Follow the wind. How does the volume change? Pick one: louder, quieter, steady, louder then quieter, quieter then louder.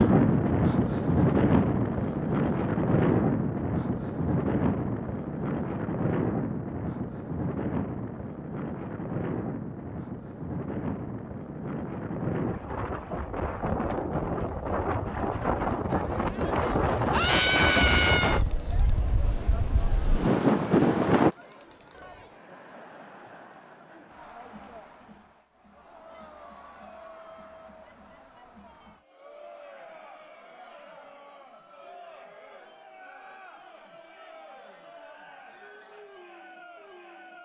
quieter then louder.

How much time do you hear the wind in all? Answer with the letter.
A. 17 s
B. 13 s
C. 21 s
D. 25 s
C.